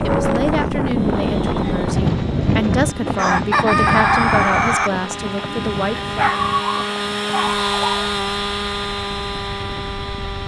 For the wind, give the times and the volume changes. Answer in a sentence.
The wind can be heard from 0.0 to 10.4 s, getting quieter.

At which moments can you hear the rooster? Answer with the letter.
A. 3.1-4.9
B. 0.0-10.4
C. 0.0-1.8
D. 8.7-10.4
A.